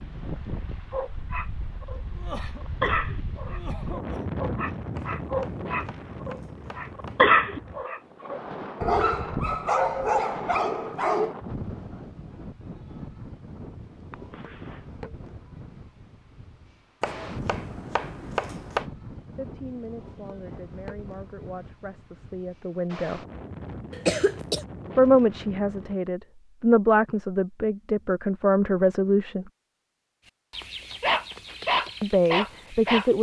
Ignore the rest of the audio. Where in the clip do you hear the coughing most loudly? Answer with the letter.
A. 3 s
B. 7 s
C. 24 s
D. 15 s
C.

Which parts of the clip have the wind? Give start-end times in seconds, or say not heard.
0.0-26.0.